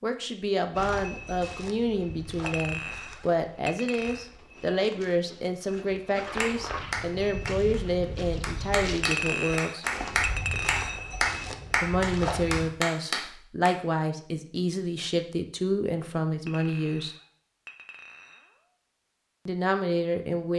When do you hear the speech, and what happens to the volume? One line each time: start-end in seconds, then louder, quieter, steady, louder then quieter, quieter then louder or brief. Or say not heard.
0.0-9.8 steady
11.8-17.1 steady
19.4-20.5 brief.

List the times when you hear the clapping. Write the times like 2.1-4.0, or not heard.
6.4-13.7.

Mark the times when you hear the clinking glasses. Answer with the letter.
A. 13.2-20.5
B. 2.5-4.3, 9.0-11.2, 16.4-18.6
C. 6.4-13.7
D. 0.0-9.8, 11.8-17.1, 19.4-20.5
B.